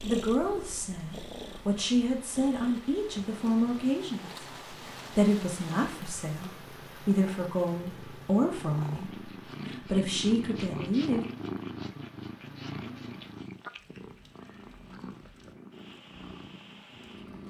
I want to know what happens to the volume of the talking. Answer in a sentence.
The loudness of the talking stays about the same.